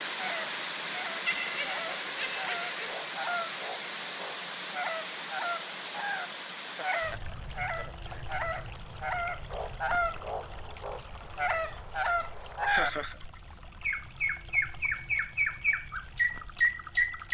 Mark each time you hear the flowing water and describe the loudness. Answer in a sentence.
The flowing water can be heard from 0.0 to 17.3 s, getting quieter.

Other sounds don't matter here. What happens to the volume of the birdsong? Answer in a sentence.
The loudness of the birdsong goes up.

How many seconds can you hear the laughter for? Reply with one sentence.
You can hear the laughter for 4 seconds altogether.